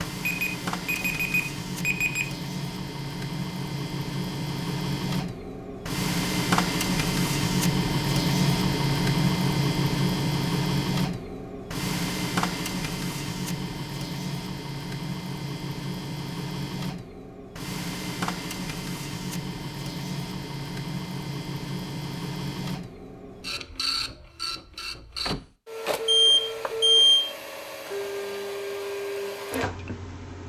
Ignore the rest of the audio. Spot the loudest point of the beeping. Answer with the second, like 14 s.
27 s.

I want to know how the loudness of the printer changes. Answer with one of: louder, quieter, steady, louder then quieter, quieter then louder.
louder then quieter.